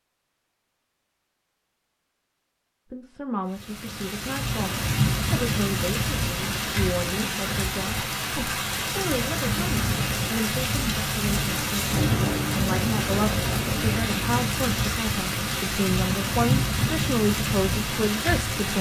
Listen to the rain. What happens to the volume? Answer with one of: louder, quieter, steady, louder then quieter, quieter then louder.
steady.